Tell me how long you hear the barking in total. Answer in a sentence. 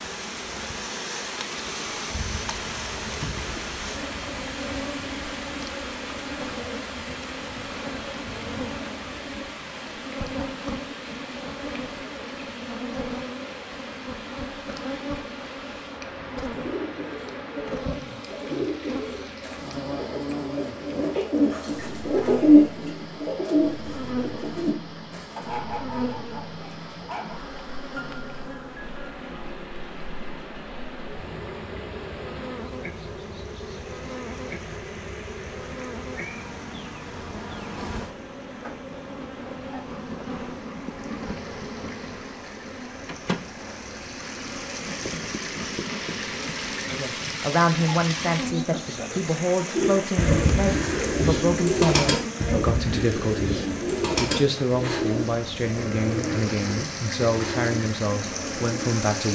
The barking can be heard for 2 seconds in total.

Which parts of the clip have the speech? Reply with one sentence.
You can hear the speech from 46.9 to 59.2 s.